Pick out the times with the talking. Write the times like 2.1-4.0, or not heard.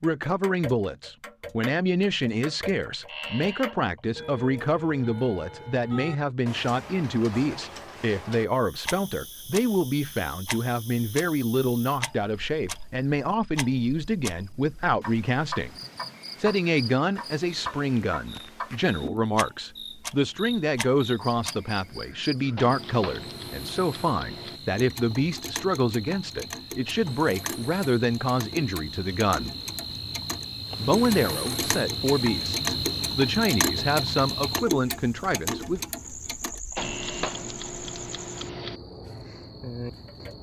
0.0-15.7, 16.4-29.6, 30.8-35.8.